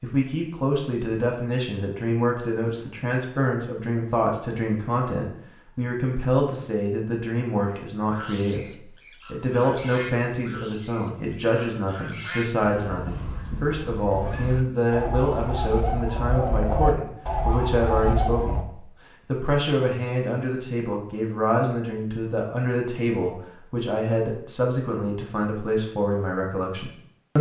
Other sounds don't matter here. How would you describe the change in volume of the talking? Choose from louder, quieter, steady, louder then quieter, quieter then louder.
steady.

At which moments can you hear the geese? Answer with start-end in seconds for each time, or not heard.
7.7-18.6.